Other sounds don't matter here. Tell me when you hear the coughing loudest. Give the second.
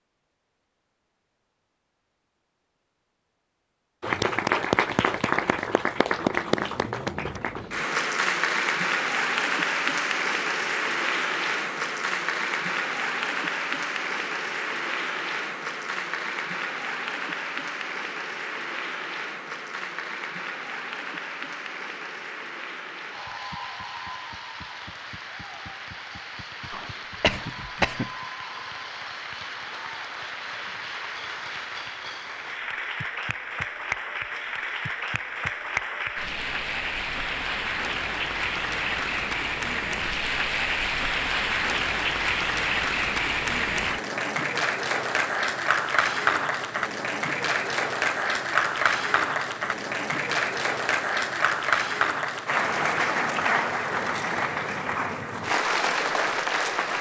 28 s.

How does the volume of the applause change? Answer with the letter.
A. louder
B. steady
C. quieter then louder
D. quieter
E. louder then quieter
C.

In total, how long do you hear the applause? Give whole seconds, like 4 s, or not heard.
53 s.